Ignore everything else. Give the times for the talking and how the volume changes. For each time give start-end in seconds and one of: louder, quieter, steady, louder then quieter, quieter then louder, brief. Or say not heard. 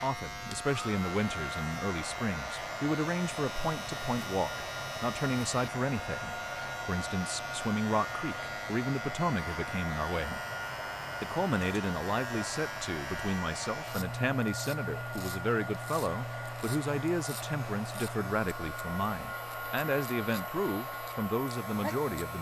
0.0-10.4 steady
11.2-22.3 steady.